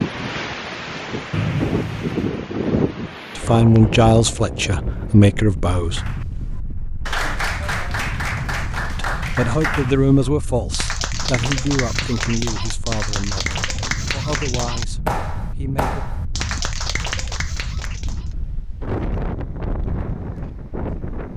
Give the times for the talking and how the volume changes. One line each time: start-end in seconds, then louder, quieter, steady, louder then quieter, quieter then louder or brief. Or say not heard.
3.4-6.2 brief
8.9-16.1 quieter.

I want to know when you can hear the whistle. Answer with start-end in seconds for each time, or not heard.
1.3-2.2.